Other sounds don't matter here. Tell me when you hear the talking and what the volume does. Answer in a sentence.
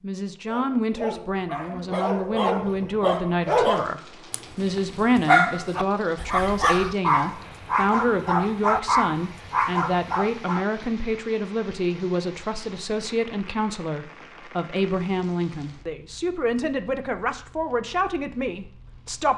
You can hear the talking from 0.0 to 19.3 s, at a steady volume.